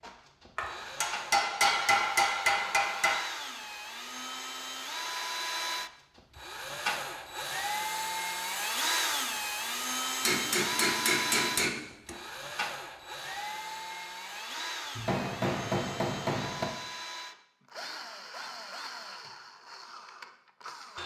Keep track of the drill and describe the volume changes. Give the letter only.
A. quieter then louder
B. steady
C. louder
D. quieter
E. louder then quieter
E.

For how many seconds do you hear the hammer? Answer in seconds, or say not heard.
6 s.